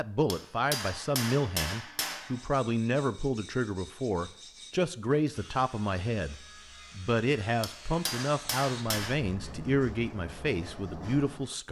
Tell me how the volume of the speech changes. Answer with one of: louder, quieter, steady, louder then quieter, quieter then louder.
steady.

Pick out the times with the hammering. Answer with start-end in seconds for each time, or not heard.
0.2-2.5, 7.6-9.2.